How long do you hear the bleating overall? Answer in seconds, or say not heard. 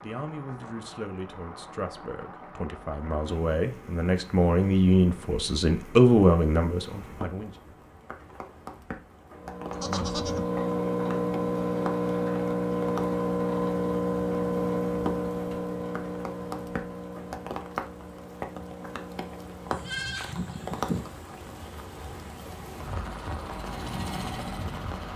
2 s.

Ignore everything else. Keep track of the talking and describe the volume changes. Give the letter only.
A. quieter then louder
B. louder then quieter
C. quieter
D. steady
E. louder
E.